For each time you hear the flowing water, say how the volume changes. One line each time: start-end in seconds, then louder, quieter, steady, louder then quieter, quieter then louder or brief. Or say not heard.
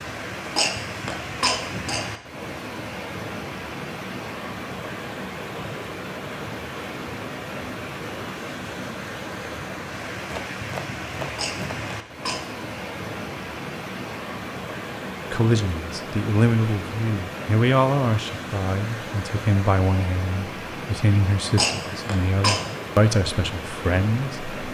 0.0-24.6 steady.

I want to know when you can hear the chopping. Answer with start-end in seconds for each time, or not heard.
10.3-11.8.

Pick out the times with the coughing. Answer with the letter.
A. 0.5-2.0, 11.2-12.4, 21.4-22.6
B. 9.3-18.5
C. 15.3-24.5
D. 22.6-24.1
A.